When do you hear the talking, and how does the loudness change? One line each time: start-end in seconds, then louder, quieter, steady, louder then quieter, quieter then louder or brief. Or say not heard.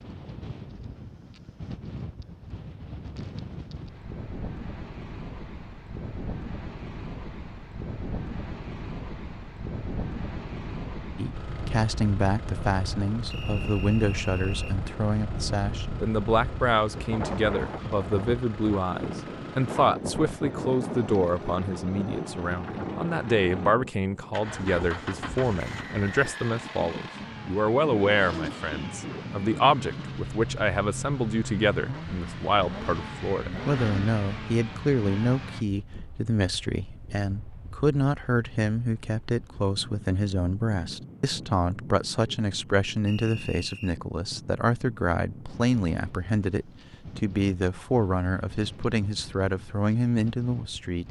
11.2-51.0 steady.